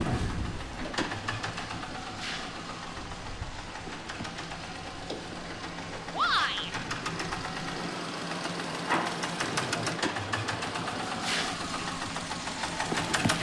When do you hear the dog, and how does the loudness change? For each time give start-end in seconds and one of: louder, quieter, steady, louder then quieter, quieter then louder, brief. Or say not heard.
not heard.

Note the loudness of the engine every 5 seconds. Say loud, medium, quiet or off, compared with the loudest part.
medium, loud, loud.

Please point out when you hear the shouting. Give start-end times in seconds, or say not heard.
6.1-6.7.